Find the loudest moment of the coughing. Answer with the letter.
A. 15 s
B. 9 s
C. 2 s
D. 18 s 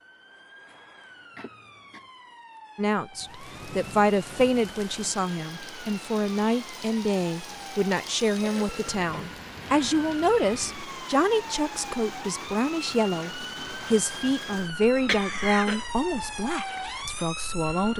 A.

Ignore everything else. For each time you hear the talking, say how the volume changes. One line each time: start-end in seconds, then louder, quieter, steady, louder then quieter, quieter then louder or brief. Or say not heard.
2.8-17.9 steady.